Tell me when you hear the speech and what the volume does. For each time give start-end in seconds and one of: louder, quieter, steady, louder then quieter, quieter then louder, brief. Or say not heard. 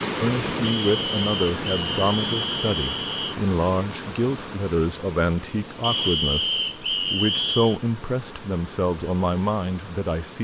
0.2-10.3 steady.